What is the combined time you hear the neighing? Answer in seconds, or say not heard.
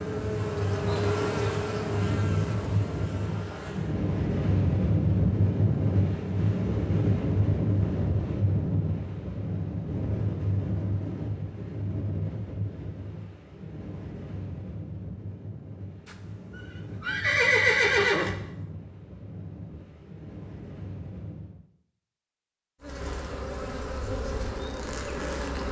2 s.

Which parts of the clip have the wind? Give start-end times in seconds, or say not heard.
0.0-21.6.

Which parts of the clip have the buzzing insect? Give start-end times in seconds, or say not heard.
0.0-4.0, 22.8-25.6.